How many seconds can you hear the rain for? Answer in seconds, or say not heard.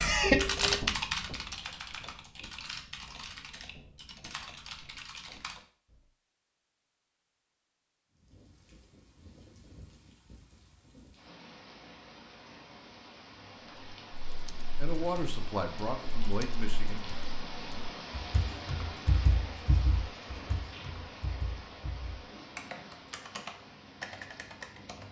17 s.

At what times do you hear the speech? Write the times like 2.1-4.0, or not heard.
14.3-17.2.